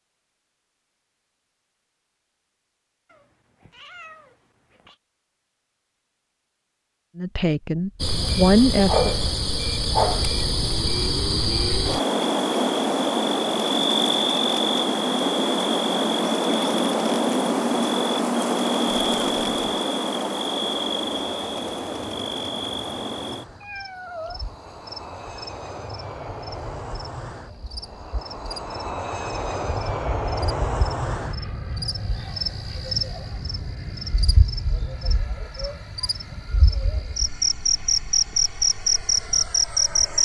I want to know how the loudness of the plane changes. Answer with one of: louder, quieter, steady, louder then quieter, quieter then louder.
louder then quieter.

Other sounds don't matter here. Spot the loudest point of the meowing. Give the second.
24 s.